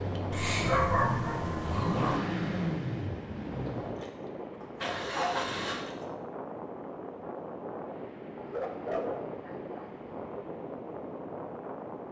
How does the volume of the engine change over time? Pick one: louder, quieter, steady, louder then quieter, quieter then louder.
quieter then louder.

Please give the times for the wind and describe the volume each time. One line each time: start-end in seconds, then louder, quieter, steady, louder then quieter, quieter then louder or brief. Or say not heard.
0.0-12.0 steady.